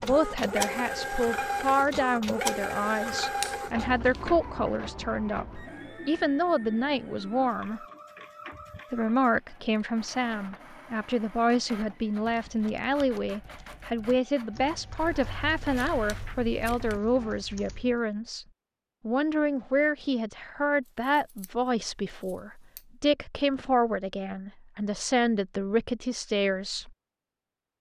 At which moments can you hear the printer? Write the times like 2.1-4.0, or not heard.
0.0-17.4.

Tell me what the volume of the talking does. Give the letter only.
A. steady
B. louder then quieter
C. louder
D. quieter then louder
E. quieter
A.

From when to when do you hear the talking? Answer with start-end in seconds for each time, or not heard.
0.0-7.8, 8.9-18.4, 19.1-26.9.